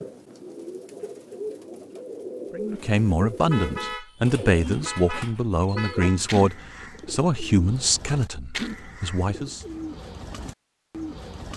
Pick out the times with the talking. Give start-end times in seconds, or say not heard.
2.5-9.6.